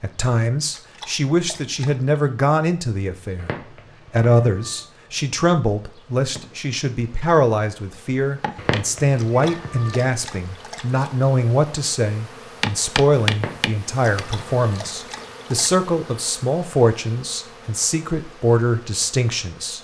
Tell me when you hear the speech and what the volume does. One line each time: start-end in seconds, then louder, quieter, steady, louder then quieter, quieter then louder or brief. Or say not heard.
0.0-19.7 steady.